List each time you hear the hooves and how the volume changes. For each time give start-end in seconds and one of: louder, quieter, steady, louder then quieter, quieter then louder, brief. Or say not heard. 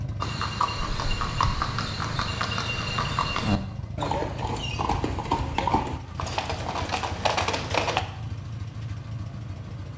0.2-8.1 steady.